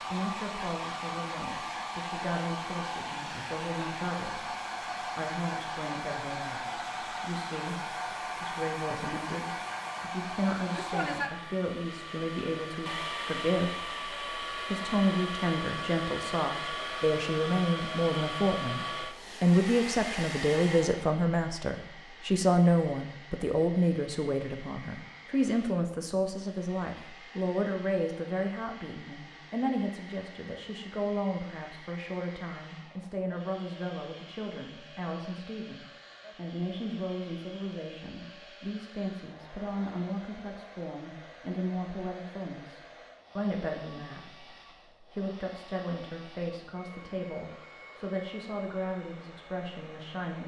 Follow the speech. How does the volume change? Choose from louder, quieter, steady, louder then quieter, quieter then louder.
louder then quieter.